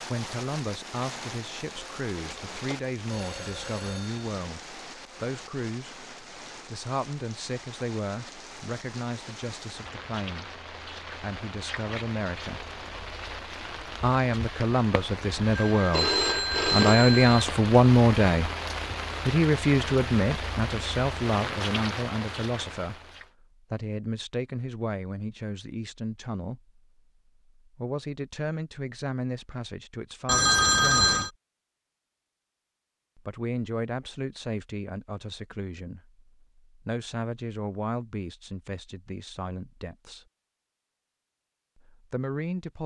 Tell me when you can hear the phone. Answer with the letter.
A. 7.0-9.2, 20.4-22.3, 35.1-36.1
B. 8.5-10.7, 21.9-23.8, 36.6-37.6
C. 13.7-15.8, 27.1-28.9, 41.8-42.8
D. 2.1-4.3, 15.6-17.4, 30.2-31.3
D.